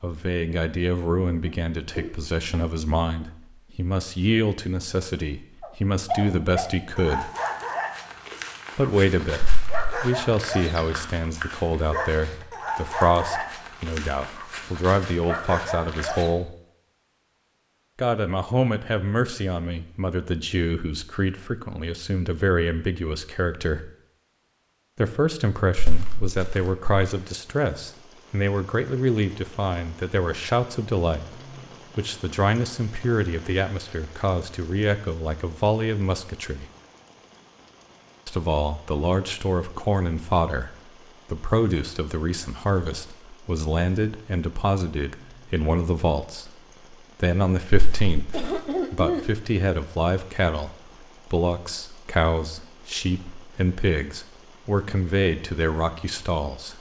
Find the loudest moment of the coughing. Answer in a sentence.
The volume of the coughing peaks at 49 seconds.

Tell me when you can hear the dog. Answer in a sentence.
The dog can be heard from 5.6 to 16.3 s.